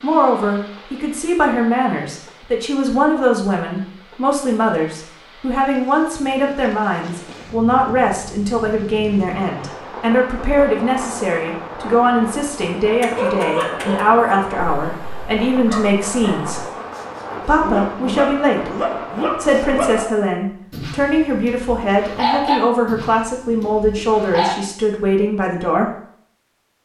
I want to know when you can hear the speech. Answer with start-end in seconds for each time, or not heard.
0.0-16.6, 17.4-25.9.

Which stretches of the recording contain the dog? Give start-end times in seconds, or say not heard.
12.8-24.6.